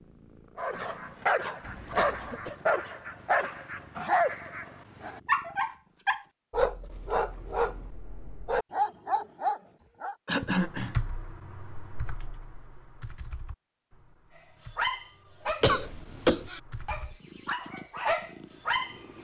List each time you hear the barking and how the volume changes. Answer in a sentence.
The barking can be heard from 0.6 to 10.2 s, at a steady volume; and from 14.8 to 19.0 s, getting quieter then louder.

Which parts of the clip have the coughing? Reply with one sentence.
The coughing can be heard from 1.6 to 2.5 s, from 10.2 to 10.9 s and from 15.6 to 16.5 s.